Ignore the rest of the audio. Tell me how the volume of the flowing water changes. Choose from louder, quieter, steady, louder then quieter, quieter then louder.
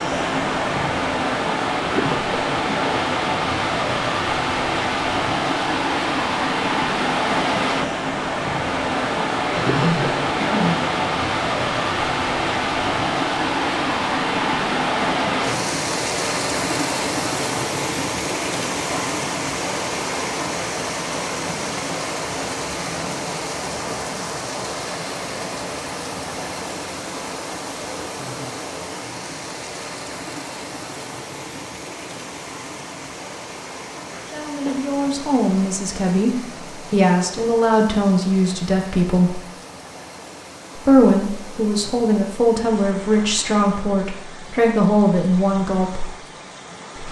quieter.